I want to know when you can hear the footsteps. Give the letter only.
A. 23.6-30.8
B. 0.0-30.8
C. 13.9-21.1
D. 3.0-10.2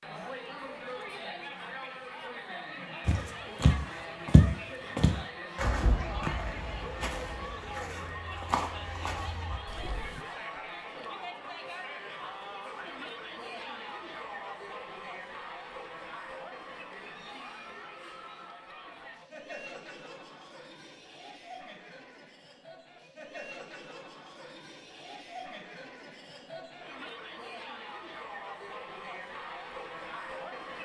D.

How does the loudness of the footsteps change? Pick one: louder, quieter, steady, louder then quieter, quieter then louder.
quieter.